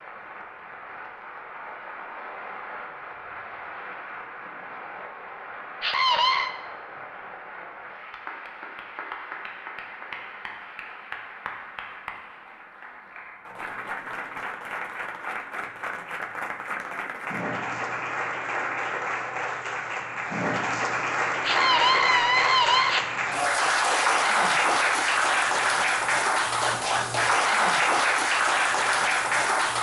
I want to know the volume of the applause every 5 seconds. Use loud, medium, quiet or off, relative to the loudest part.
quiet, quiet, quiet, medium, loud, loud.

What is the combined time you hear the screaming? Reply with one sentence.
The screaming can be heard for 2 seconds in total.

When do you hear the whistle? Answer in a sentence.
The whistle can't be heard in this clip.